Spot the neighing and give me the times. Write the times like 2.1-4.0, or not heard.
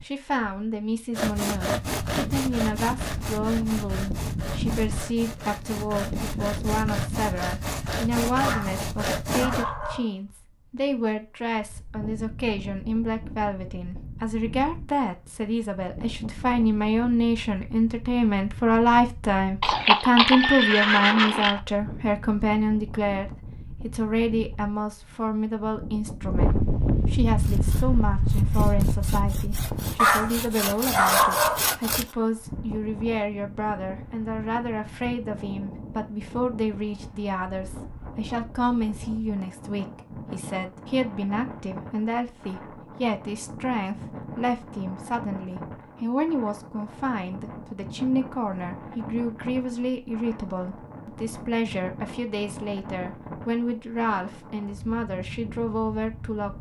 19.6-21.6.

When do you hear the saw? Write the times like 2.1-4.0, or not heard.
1.1-9.7, 27.2-32.1.